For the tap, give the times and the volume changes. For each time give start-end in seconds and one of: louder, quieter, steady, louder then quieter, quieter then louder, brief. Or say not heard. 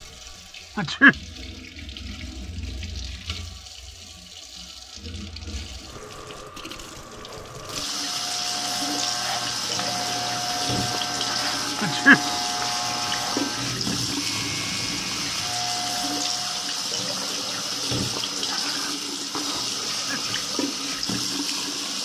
0.0-22.0 louder.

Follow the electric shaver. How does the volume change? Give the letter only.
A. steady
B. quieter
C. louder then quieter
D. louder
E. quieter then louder
A.